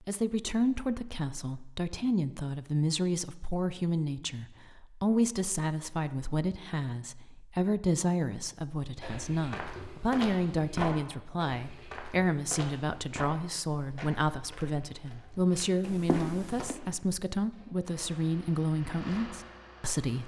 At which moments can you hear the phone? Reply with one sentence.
The phone can be heard from 15.8 to 16.8 s.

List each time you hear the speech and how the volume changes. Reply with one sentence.
The speech can be heard from 0.1 to 20.2 s, at a steady volume.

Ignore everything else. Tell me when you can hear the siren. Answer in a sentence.
The siren can't be heard in this clip.